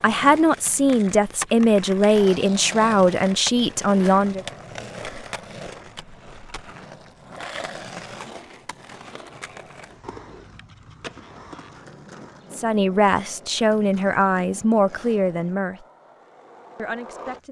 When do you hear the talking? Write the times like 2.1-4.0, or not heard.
0.0-4.5, 12.5-15.8, 16.8-17.4.